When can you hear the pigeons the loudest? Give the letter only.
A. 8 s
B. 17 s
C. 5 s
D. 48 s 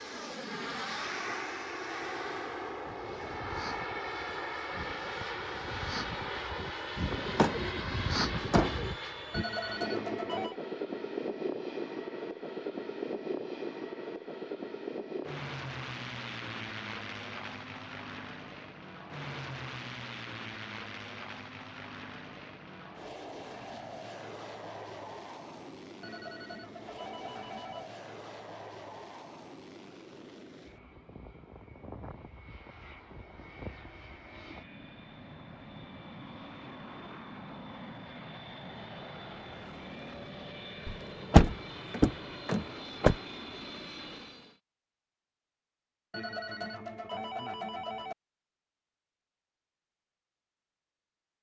A.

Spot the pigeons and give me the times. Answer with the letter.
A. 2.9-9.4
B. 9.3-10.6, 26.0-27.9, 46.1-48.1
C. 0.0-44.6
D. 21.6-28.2
A.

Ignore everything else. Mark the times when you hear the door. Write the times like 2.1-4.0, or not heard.
7.3-8.9, 40.9-43.1.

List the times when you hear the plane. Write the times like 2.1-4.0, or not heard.
0.0-44.6.